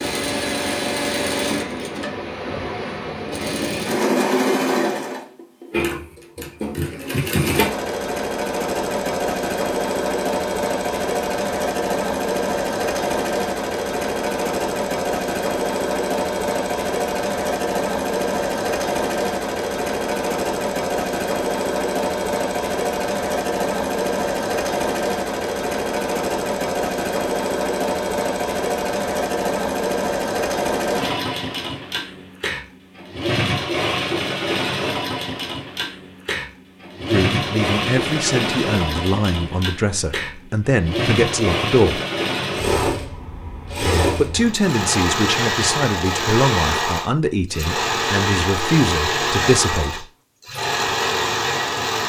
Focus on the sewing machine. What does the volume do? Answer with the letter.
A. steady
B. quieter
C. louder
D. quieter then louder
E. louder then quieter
A.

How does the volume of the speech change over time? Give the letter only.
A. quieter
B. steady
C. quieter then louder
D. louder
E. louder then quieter
B.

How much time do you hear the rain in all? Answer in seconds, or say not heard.
not heard.